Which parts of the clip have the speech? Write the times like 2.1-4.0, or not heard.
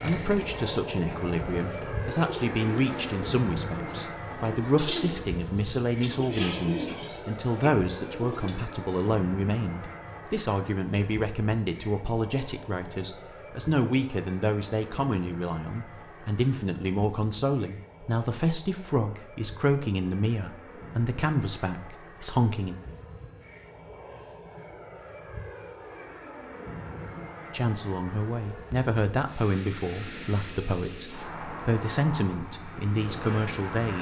0.0-22.8, 27.5-33.9.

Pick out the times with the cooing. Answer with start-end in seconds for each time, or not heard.
0.0-8.5.